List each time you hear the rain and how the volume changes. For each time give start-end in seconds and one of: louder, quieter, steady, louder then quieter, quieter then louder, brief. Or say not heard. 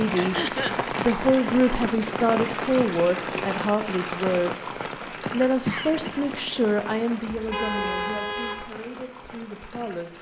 0.0-10.1 quieter.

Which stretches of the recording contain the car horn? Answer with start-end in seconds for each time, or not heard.
7.3-8.7.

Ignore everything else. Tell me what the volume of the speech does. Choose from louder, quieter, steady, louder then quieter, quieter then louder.
quieter.